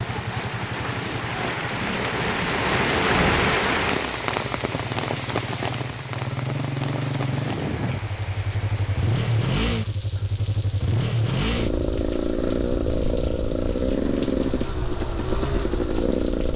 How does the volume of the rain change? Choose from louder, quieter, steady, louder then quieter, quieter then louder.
quieter.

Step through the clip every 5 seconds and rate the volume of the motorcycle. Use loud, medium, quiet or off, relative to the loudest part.
medium, loud, loud, loud.